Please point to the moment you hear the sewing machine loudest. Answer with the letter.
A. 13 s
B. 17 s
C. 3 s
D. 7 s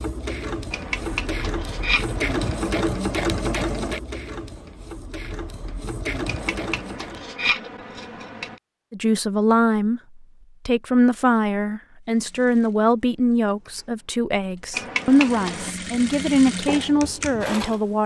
C.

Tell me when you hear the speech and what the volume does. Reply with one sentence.
The speech can be heard from 8.9 to 18.0 s, at a steady volume.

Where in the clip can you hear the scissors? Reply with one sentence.
You can hear the scissors from 0.7 to 2.7 s, from 6.2 to 8.6 s and from 14.7 to 15.8 s.